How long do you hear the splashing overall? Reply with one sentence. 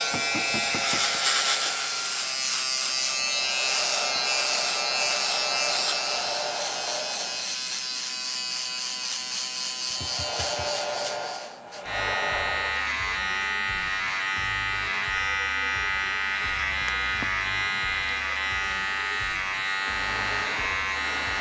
You can't hear the splashing here.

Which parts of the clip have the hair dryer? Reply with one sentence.
The hair dryer can be heard from 0.0 to 7.5 s, from 9.9 to 12.9 s and from 19.6 to 21.3 s.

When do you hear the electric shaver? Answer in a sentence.
The electric shaver can be heard from 0.0 to 21.3 s.